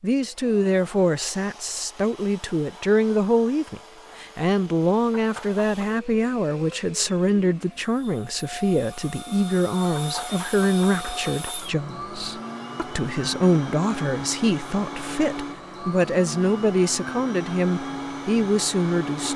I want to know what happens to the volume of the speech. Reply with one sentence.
The volume of the speech stays about the same.